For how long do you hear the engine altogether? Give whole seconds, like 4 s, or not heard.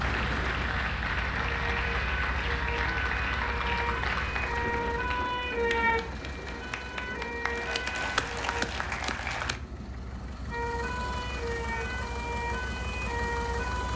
14 s.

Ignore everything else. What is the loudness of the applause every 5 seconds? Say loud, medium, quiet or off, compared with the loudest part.
loud, loud, off.